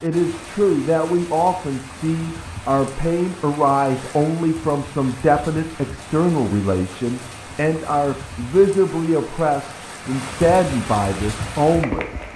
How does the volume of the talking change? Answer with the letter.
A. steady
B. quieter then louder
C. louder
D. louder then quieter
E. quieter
A.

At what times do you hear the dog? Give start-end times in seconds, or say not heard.
not heard.